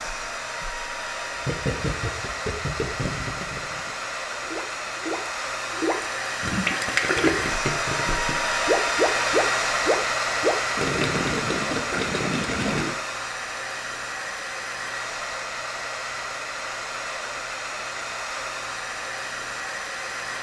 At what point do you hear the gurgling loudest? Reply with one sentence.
The loudest moment of the gurgling is at 7 seconds.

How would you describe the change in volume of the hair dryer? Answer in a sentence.
The loudness of the hair dryer goes up, then down.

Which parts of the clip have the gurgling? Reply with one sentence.
The gurgling can be heard from 1.4 to 12.9 s.